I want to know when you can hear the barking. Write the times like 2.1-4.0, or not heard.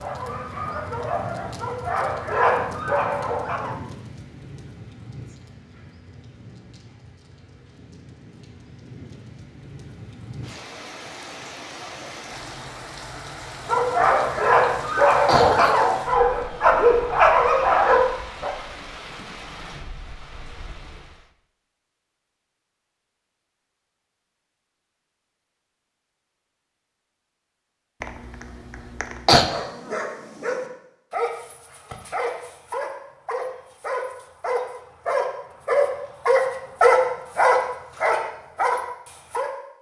0.0-3.8, 13.7-18.5, 29.4-39.5.